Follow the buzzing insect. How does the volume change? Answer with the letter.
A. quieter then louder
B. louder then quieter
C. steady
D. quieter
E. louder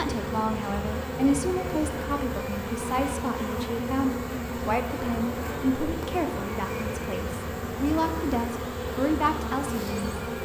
C.